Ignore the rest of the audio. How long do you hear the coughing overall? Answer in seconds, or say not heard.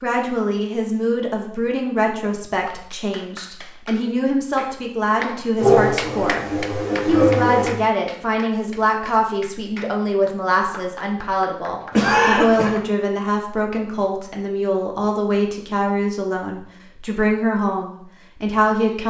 3 s.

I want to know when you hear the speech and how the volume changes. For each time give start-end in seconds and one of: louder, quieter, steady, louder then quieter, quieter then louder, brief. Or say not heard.
0.0-6.5 quieter then louder
7.0-19.0 steady.